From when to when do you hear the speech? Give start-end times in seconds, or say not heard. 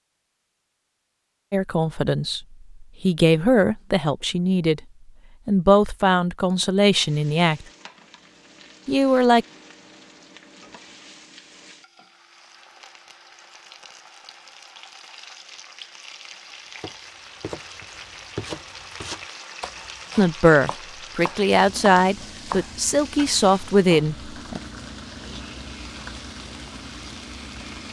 1.5-4.8, 5.5-7.7, 8.8-9.4, 20.1-24.6.